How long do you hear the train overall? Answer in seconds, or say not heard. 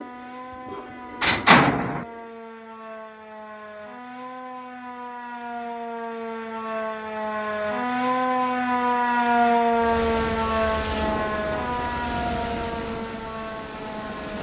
7 s.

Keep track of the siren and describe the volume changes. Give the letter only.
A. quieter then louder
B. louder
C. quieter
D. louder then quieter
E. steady
D.